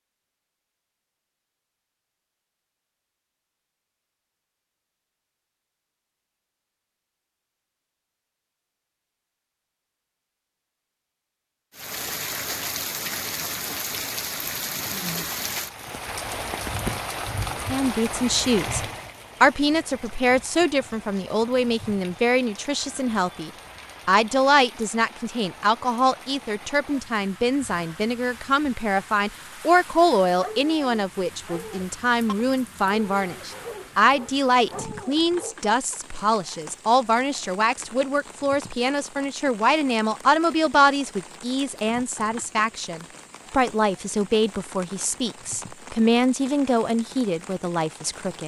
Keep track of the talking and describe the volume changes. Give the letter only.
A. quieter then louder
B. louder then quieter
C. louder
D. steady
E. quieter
D.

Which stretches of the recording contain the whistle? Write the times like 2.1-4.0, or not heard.
not heard.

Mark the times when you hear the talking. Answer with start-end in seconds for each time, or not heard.
17.7-48.4.